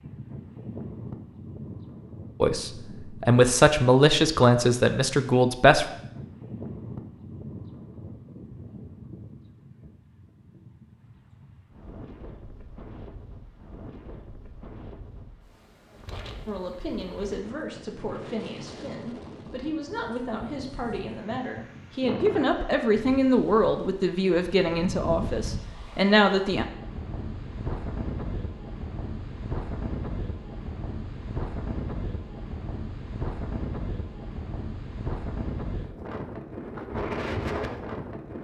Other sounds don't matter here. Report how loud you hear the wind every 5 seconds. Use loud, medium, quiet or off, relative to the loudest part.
medium, medium, quiet, medium, medium, loud, loud, loud.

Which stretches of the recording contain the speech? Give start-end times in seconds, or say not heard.
2.4-5.8, 16.4-26.6.